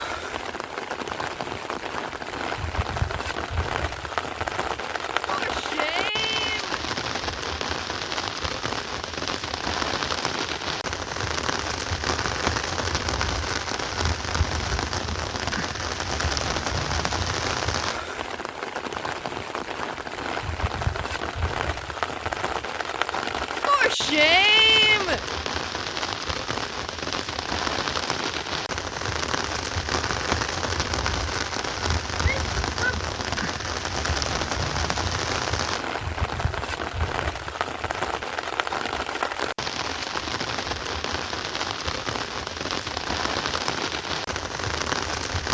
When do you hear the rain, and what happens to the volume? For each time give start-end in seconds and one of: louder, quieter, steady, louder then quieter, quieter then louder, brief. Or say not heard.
0.0-45.4 steady.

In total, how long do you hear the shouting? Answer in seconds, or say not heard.
4 s.